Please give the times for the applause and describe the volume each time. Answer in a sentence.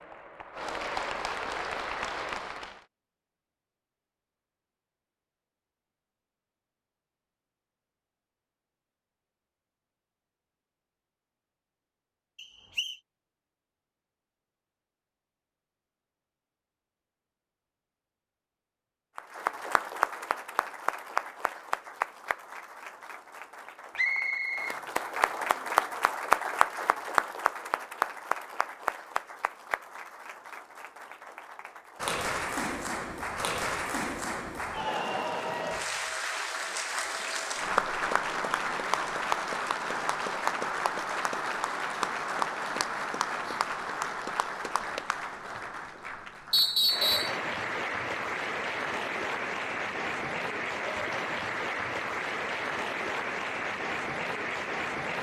The applause can be heard briefly from 0.0 to 2.9 s; and from 19.1 to 55.1 s, at a steady volume.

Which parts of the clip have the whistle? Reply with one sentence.
The whistle can be heard from 12.3 to 12.9 s, from 23.9 to 24.8 s and from 46.5 to 47.4 s.